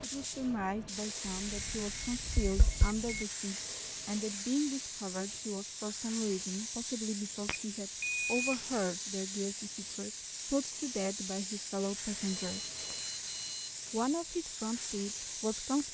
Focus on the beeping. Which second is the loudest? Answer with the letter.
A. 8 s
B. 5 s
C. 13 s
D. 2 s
A.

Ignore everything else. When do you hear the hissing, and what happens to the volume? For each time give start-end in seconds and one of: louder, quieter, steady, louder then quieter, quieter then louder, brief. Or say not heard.
0.0-15.8 steady.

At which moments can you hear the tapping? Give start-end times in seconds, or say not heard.
1.4-2.9.